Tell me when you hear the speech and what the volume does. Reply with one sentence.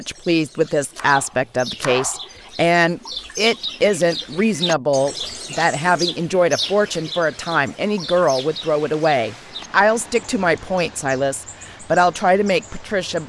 You can hear the speech from 0.0 to 13.2 s, at a steady volume.